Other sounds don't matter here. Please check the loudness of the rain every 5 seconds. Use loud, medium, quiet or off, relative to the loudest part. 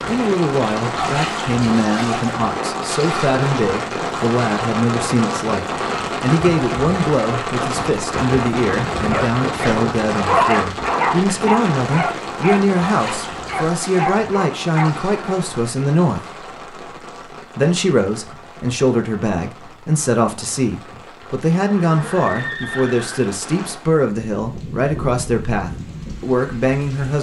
loud, loud, loud, quiet, quiet, medium.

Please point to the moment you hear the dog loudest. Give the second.
10 s.